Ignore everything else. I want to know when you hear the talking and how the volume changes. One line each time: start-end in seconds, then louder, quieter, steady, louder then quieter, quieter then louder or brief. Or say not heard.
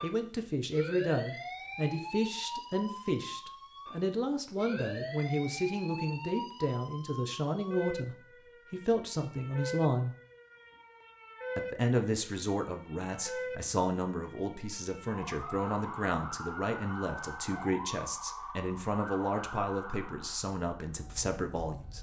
0.0-10.2 steady
11.6-21.9 steady.